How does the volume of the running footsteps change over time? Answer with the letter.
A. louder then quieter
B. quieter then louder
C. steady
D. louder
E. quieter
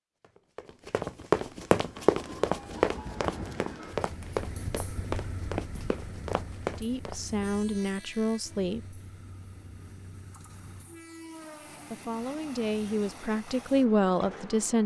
E.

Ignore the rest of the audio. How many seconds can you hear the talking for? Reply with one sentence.
The talking can be heard for 5 seconds in total.